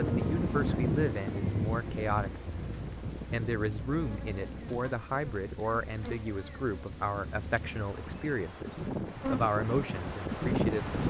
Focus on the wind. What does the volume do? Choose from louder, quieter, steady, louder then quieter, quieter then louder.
quieter then louder.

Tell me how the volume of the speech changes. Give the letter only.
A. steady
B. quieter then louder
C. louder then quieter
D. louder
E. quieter
A.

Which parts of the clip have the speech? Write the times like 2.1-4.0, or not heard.
0.0-11.0.